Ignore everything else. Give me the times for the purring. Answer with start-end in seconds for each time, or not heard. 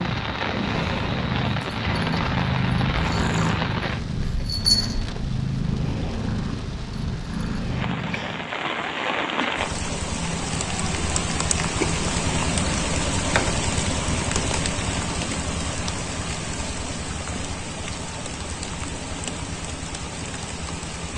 0.0-8.6.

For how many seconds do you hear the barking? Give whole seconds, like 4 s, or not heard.
not heard.